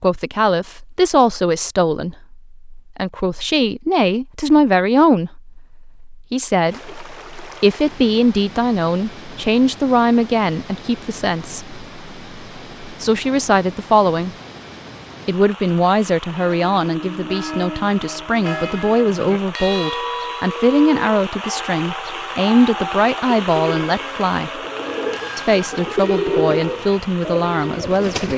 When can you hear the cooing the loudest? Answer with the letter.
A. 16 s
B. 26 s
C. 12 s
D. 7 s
B.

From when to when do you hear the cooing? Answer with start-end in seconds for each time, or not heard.
23.2-28.3.